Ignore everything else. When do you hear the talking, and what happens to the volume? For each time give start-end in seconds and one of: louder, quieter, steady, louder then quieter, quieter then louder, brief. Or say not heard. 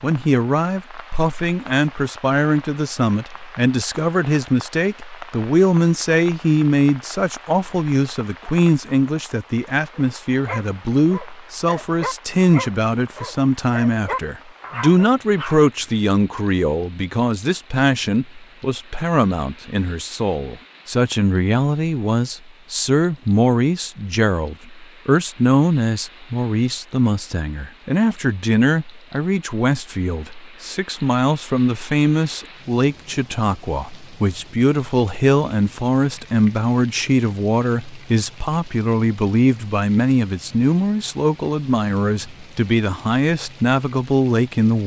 0.0-44.8 steady.